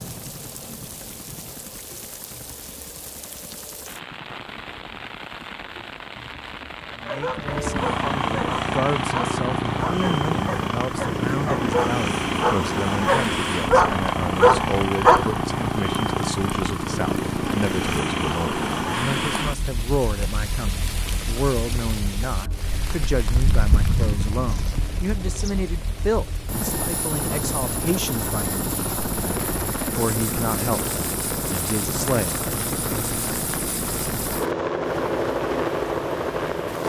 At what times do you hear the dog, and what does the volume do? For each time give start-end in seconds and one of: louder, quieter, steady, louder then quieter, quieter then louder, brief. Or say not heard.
7.0-15.3 louder.